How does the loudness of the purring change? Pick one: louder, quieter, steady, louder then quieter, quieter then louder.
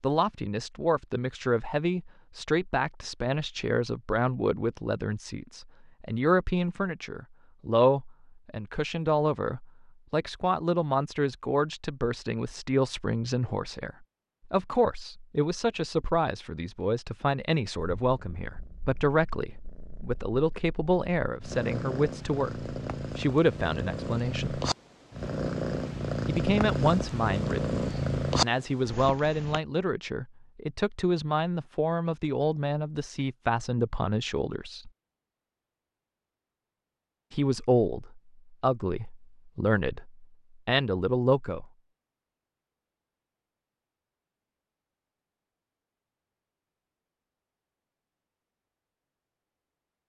louder.